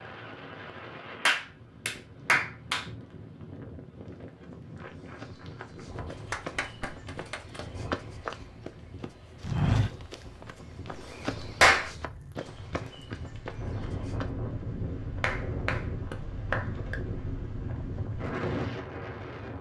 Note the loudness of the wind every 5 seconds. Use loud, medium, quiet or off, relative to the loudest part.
medium, medium, medium, loud.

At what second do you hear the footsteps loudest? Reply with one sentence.
The volume of the footsteps peaks at 10 seconds.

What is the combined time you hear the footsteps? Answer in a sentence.
The footsteps can be heard for 10 seconds in total.